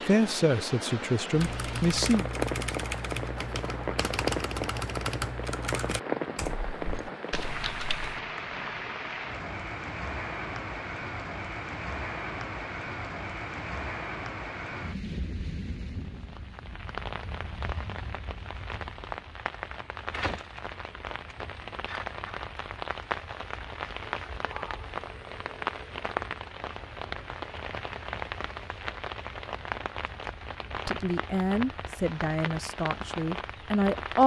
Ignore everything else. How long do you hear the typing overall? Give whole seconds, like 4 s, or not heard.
7 s.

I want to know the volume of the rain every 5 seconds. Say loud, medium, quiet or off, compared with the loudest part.
loud, loud, loud, medium, loud, loud, loud.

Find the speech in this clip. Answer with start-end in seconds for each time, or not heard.
0.1-2.3, 30.9-34.2.